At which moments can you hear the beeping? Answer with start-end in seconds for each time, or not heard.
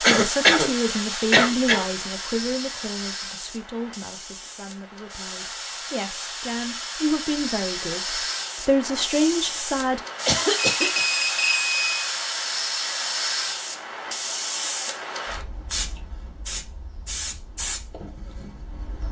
10.7-12.1.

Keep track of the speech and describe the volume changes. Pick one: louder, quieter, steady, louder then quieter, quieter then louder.
quieter then louder.